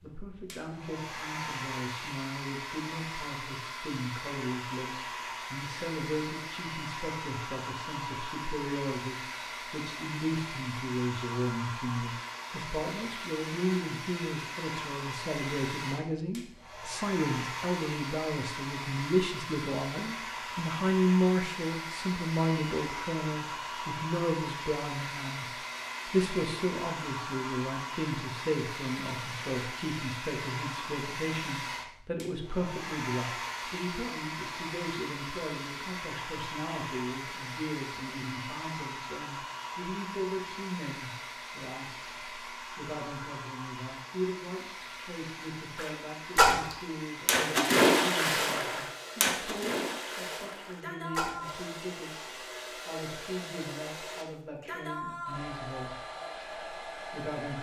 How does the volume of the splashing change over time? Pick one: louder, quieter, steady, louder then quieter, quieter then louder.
quieter.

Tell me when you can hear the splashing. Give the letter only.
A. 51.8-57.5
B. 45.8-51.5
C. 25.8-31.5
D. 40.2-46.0
B.